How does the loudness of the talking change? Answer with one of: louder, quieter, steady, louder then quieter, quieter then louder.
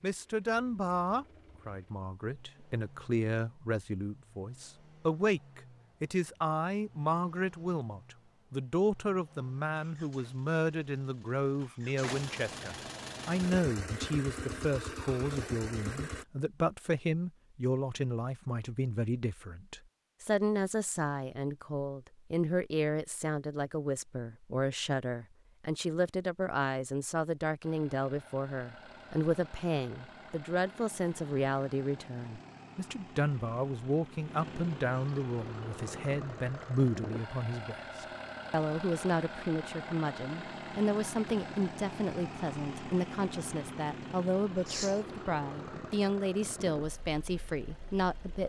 steady.